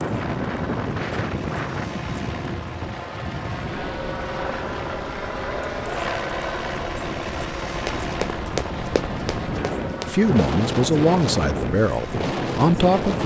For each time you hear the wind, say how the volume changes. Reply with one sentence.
You can hear the wind from 0.0 to 13.2 s, getting quieter then louder.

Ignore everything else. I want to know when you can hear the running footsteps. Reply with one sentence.
The running footsteps can be heard from 7.8 to 10.2 s.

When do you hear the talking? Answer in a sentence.
You can hear the talking from 10.1 to 13.2 s.